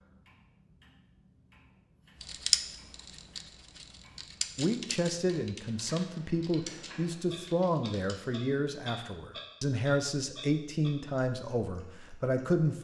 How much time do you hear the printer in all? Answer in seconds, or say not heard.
not heard.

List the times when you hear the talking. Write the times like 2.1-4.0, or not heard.
4.5-12.7.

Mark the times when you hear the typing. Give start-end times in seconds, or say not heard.
2.2-8.5.